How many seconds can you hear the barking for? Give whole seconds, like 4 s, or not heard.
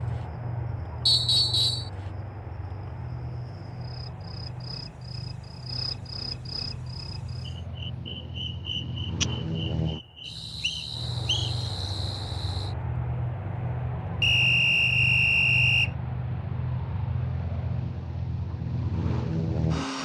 not heard.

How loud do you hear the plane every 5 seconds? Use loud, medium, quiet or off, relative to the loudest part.
medium, medium, loud, loud.